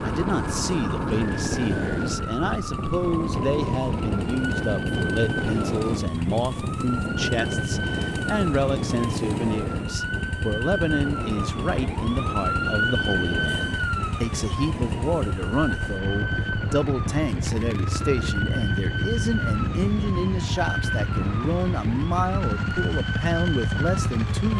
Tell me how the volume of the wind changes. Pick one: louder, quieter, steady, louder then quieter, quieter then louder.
quieter.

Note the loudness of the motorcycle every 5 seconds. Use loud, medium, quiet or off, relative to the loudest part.
medium, medium, medium, loud, loud.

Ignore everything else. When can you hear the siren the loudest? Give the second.
13 s.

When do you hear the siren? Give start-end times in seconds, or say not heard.
0.0-24.5.